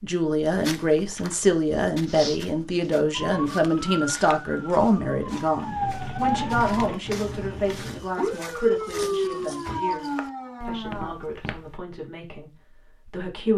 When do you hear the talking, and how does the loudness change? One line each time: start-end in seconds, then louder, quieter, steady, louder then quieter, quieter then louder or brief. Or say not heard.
0.0-13.5 quieter.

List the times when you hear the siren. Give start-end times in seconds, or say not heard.
3.1-11.2.